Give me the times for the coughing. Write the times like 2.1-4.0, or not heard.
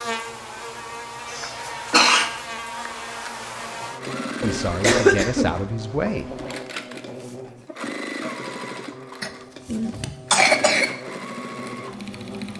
1.3-2.3, 4.4-6.5, 9.2-10.8.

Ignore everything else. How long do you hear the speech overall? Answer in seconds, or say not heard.
2 s.